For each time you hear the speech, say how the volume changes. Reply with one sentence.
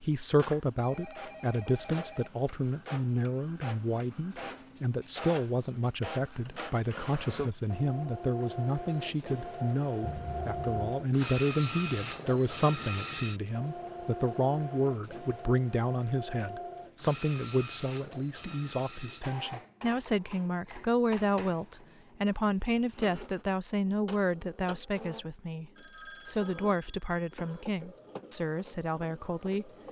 You can hear the speech from 0.0 to 29.7 s, at a steady volume.